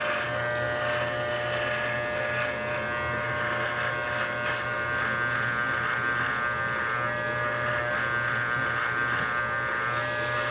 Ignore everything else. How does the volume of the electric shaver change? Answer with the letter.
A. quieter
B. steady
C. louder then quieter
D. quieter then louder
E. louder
B.